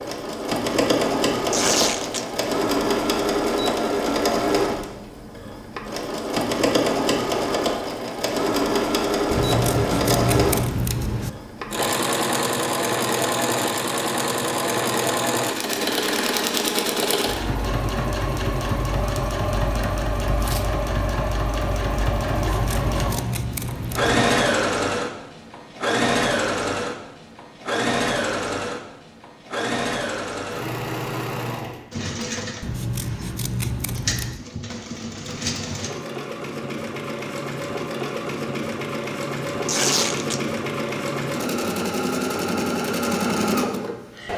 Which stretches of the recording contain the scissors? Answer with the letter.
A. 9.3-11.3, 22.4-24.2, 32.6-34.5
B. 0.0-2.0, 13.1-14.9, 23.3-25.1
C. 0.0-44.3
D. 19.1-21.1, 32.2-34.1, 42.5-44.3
A.